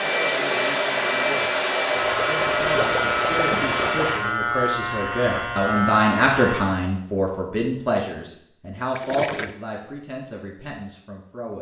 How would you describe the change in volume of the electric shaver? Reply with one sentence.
The loudness of the electric shaver stays about the same.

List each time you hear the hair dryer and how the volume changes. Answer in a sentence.
The hair dryer can be heard from 0.0 to 4.4 s, at a steady volume.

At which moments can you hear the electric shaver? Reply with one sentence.
You can hear the electric shaver from 1.9 to 6.6 s.